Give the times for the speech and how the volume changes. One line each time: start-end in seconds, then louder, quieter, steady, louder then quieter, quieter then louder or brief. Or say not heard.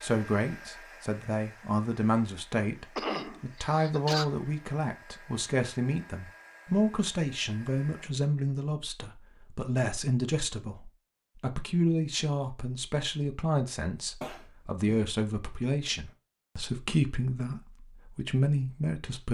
0.0-19.2 steady.